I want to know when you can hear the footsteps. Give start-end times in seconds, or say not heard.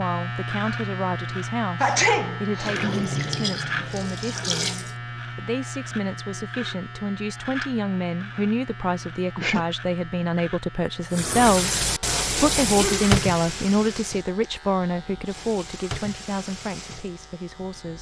not heard.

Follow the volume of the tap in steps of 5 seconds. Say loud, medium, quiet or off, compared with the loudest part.
loud, off, loud, quiet.